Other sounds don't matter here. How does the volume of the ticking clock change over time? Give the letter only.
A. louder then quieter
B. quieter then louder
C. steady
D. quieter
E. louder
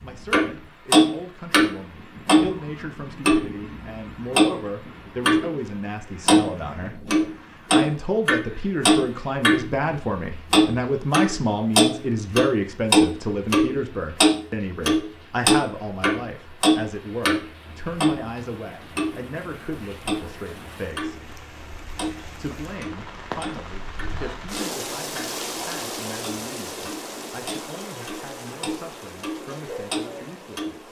D.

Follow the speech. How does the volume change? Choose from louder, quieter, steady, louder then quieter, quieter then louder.
louder then quieter.